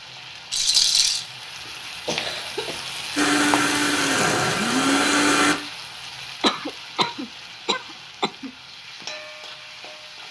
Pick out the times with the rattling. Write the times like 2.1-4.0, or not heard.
0.5-1.2.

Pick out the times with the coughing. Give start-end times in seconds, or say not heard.
2.0-3.0, 6.4-8.5.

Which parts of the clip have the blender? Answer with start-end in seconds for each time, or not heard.
3.1-5.5.